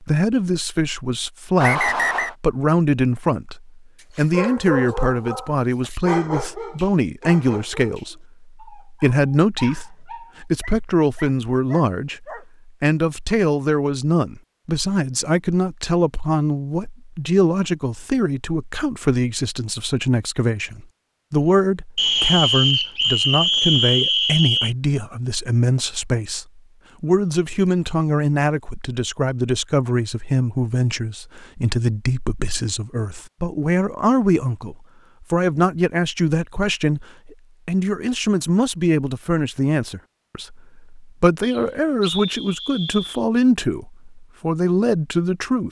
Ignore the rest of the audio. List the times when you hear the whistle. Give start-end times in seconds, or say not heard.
1.6-2.4, 21.9-24.8, 41.4-43.2.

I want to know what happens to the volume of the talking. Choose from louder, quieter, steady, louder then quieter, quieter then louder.
steady.